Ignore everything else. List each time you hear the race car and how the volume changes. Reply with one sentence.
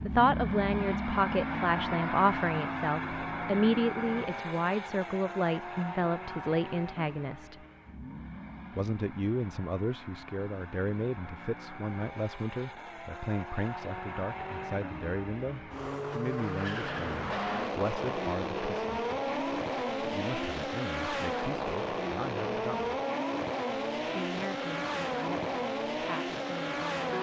You can hear the race car from 0.0 to 27.1 s, getting quieter then louder.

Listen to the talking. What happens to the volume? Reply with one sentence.
The volume of the talking goes down.